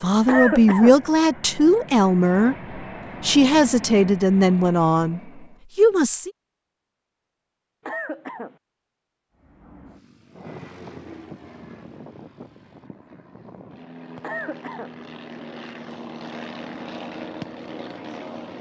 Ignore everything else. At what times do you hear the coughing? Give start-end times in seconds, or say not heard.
0.2-1.0, 7.8-8.6, 14.2-14.9.